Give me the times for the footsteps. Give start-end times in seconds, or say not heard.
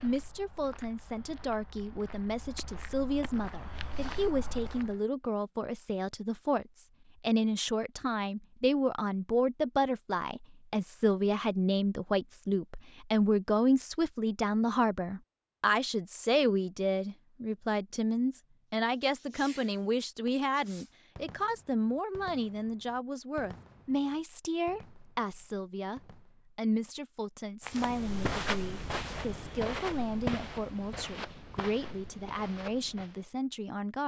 0.0-5.0, 27.6-33.3.